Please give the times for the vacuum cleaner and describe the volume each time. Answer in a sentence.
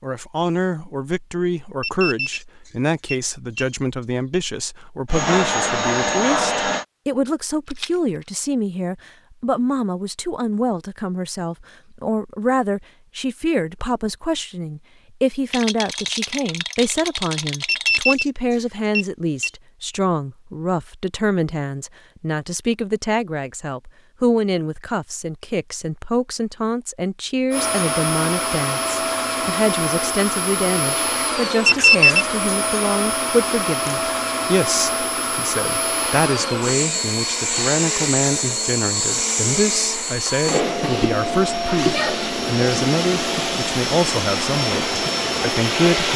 You can hear the vacuum cleaner briefly from 5.0 to 6.8 s; and from 27.5 to 46.1 s, at a steady volume.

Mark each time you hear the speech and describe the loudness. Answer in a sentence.
You can hear the speech from 0.0 to 46.1 s, at a steady volume.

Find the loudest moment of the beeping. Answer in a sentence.
The volume of the beeping peaks at 32 seconds.